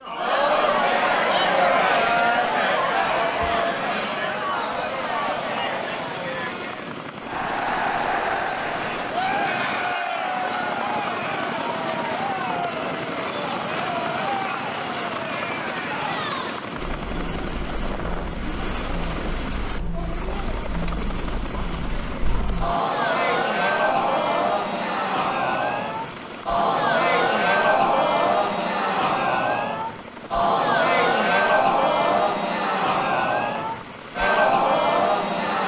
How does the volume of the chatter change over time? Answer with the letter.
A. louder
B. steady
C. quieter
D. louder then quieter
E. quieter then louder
E.